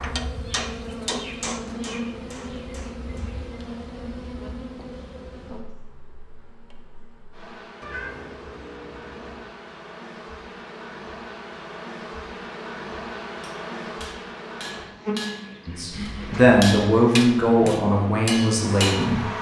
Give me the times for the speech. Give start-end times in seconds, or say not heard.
15.7-19.2.